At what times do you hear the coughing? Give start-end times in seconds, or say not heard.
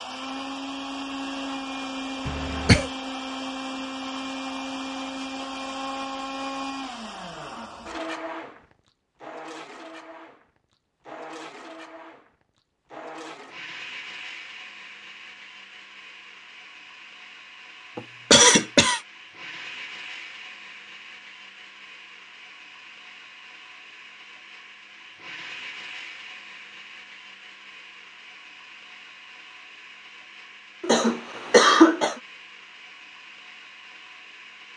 2.2-2.9, 17.9-19.0, 30.8-32.1.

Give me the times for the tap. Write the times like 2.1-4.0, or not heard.
not heard.